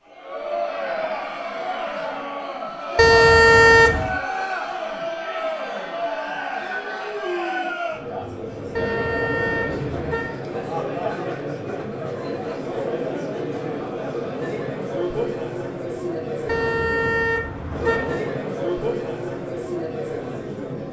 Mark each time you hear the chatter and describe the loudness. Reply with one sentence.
The chatter can be heard from 0.1 to 20.8 s, at a steady volume.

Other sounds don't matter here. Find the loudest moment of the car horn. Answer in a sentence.
The loudest moment of the car horn is at 4 seconds.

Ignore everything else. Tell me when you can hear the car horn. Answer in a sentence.
The car horn can be heard from 3.0 to 4.2 s, from 8.8 to 10.3 s and from 16.4 to 18.2 s.